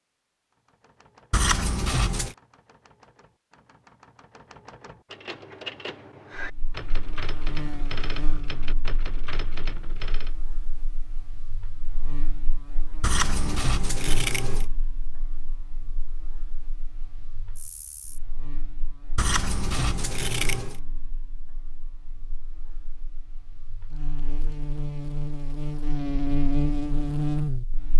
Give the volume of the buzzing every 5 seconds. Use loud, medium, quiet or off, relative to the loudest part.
off, quiet, quiet, quiet, quiet, loud.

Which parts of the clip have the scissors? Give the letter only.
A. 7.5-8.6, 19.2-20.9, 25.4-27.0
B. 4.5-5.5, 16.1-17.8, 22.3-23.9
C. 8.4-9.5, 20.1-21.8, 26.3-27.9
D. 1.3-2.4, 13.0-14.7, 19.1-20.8
D.